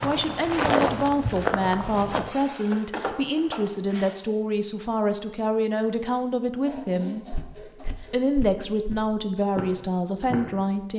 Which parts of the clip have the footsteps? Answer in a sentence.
The footsteps can be heard from 0.0 to 2.3 s and from 6.7 to 10.7 s.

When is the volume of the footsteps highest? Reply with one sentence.
The volume of the footsteps peaks at 1 second.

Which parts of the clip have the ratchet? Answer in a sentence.
You can hear the ratchet from 2.2 to 4.2 s.